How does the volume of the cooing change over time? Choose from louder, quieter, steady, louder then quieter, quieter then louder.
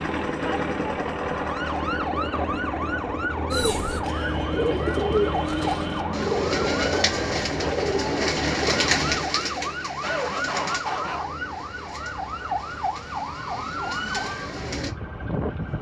quieter.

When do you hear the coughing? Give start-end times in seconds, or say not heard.
10.0-11.2.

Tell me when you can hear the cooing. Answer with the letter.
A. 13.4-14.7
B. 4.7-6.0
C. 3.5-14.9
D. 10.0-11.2
C.